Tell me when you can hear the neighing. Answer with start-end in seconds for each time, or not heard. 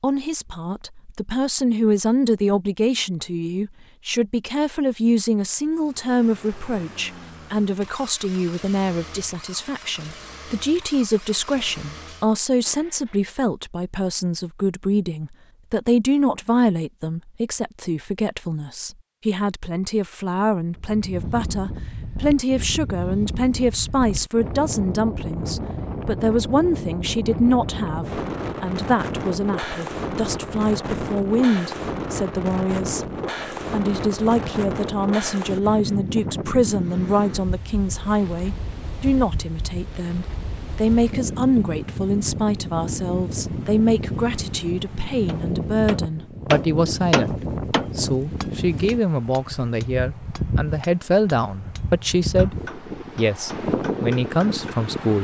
not heard.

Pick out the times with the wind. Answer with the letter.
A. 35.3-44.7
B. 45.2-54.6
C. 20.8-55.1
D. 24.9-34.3
C.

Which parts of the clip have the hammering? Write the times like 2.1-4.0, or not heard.
45.2-54.6.